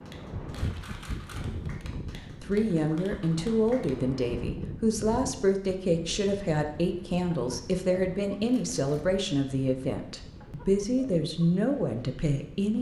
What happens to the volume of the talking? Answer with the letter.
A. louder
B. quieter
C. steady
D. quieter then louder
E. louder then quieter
C.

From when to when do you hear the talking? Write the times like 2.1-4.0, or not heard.
2.2-12.7.